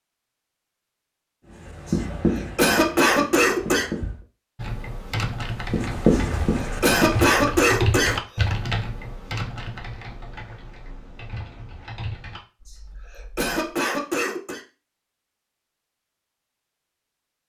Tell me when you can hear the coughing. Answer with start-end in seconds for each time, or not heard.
1.9-3.9, 6.1-8.2, 12.7-14.6.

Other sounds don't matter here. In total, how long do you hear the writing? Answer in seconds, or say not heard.
5 s.